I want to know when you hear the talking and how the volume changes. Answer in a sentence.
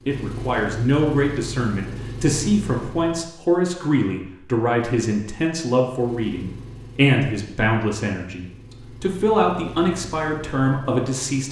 The talking can be heard from 0.1 to 11.4 s, at a steady volume.